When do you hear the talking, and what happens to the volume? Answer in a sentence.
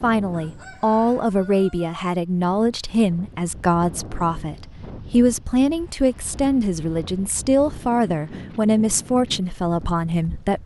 The talking can be heard from 0.0 to 10.6 s, at a steady volume.